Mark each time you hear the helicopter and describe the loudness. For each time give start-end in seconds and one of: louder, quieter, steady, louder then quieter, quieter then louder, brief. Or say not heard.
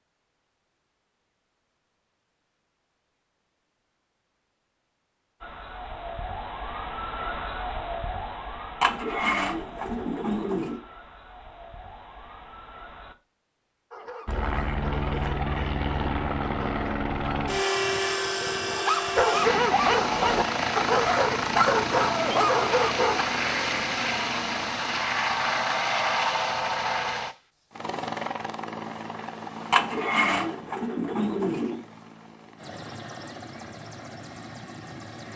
14.2-35.3 quieter.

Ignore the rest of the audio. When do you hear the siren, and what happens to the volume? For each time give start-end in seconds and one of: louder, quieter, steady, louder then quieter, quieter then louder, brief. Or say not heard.
5.4-13.2 quieter.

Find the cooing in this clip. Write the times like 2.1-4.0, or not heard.
8.8-10.8, 29.7-31.8.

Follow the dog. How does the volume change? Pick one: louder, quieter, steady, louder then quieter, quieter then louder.
louder.